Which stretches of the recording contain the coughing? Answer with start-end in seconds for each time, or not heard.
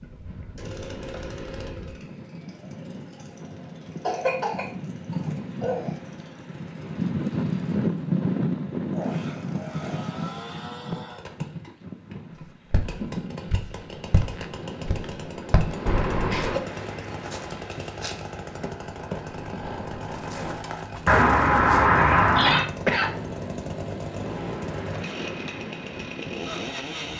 4.0-6.0, 15.8-16.6, 22.4-23.4.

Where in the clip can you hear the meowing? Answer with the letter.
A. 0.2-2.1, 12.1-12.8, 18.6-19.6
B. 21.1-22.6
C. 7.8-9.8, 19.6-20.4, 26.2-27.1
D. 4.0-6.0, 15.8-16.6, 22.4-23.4
B.